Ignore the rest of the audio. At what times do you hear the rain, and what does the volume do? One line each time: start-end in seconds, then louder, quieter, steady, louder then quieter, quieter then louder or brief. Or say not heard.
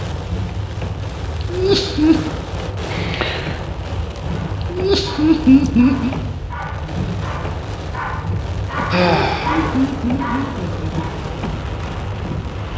0.0-12.7 steady.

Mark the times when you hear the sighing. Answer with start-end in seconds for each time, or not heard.
2.9-3.6, 8.9-9.7.